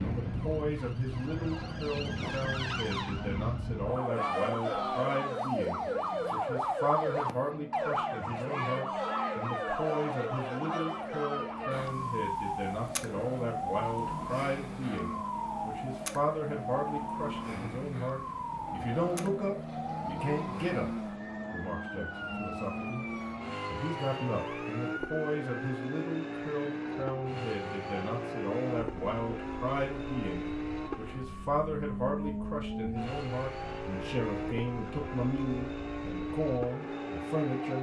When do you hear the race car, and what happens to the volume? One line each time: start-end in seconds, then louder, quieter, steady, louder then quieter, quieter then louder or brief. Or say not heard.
0.0-37.7 louder.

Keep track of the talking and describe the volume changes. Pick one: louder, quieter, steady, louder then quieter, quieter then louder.
steady.